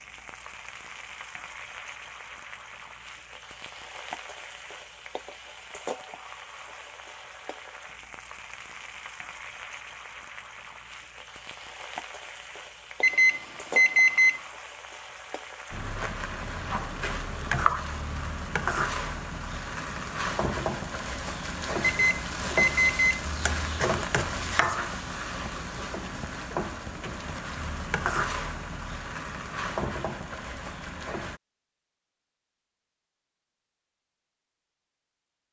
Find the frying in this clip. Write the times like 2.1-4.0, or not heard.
0.0-31.4.